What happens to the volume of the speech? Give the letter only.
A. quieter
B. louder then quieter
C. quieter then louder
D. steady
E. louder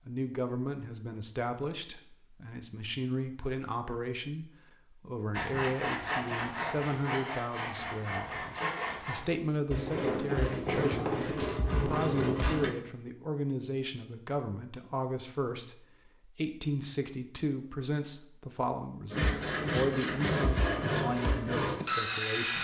D.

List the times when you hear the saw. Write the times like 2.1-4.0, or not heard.
5.3-12.8, 19.1-22.5.